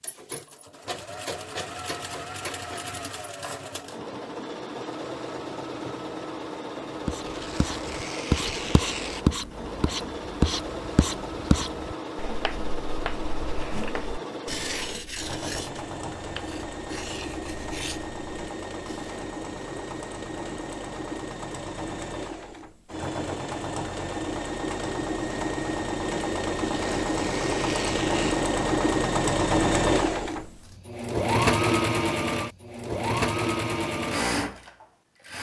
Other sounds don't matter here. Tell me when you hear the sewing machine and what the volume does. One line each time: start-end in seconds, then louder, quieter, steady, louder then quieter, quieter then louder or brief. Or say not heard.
0.0-35.3 louder.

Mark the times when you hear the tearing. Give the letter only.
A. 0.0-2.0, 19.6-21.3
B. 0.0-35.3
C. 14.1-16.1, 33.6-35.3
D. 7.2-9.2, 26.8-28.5
D.